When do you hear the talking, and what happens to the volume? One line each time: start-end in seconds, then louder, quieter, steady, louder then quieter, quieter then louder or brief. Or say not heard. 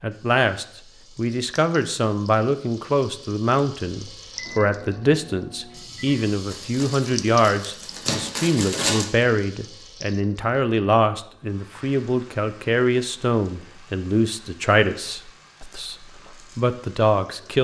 0.0-17.5 steady.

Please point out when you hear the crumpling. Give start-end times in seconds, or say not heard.
6.5-9.1.